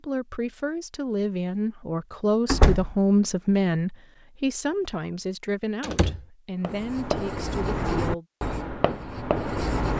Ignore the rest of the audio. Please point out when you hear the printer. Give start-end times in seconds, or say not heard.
not heard.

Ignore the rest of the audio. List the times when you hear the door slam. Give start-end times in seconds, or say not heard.
2.5-3.0, 5.8-6.2.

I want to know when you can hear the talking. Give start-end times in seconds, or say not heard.
0.0-8.2.